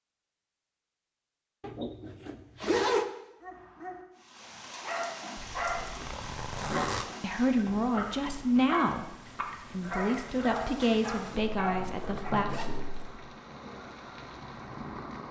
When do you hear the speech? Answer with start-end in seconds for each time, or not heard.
7.2-12.5.